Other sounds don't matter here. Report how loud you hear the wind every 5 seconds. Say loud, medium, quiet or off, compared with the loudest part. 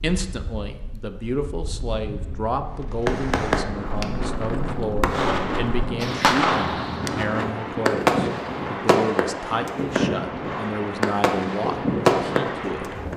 medium, loud, loud.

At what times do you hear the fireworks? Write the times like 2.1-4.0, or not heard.
2.9-13.1.